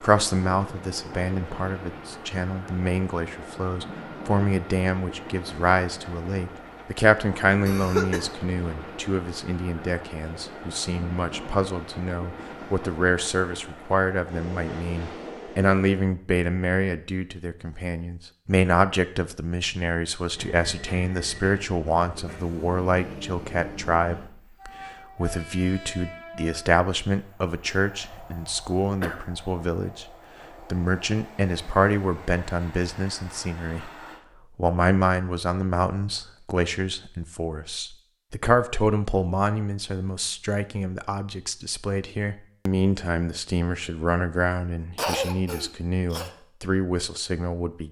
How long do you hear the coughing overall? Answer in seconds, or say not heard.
3 s.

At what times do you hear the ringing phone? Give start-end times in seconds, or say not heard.
not heard.